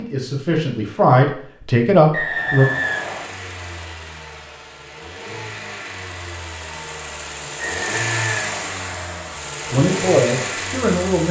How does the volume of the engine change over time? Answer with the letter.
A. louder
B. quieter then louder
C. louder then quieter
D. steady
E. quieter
A.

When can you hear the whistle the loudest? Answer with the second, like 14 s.
3 s.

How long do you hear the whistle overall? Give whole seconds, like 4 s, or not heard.
3 s.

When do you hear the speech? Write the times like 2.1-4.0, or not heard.
0.0-2.7, 9.7-11.2.